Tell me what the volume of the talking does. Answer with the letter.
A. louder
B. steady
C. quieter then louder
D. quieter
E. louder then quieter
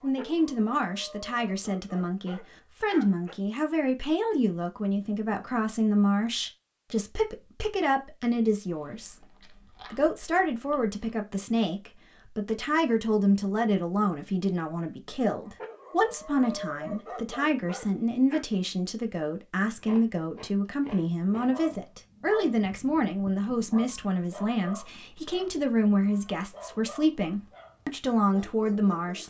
B.